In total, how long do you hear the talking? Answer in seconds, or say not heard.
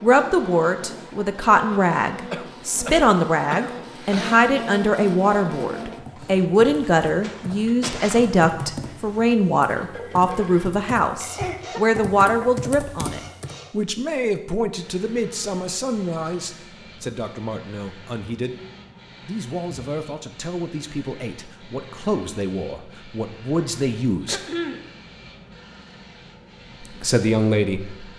25 s.